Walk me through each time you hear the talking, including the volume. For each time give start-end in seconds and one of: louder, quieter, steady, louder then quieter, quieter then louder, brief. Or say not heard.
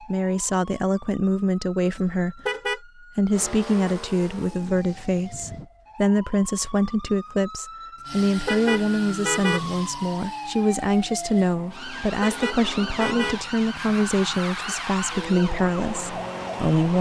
0.1-2.4 brief
3.1-16.9 steady.